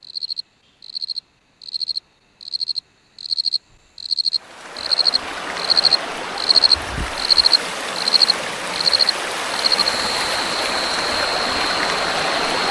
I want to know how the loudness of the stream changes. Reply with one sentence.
The volume of the stream goes up.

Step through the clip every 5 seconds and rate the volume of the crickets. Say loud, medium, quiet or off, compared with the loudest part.
medium, loud, medium.